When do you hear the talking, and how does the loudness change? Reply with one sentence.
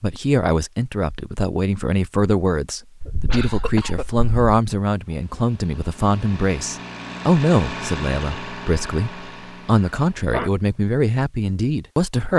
The talking can be heard from 0.0 to 12.3 s, at a steady volume.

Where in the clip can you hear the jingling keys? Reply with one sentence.
The jingling keys can't be heard in this clip.